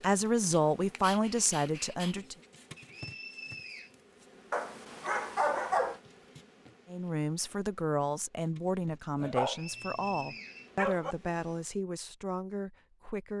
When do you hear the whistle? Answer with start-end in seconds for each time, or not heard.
2.8-4.0, 9.4-10.7.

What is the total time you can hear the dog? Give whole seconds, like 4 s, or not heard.
5 s.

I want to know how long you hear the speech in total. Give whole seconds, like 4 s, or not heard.
9 s.